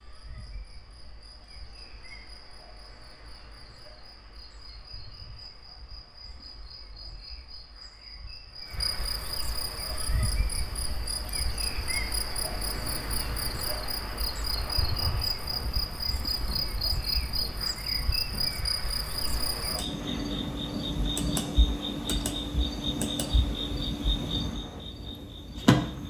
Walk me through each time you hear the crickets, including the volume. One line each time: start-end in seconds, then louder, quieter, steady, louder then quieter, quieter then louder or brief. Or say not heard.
0.0-26.0 louder.